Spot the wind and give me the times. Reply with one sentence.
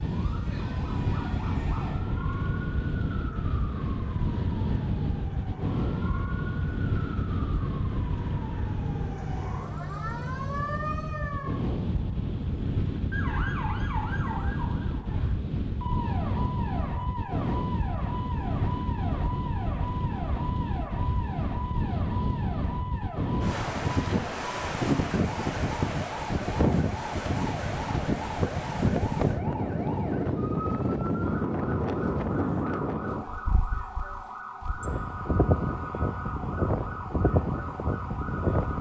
You can hear the wind from 0.0 to 38.7 s.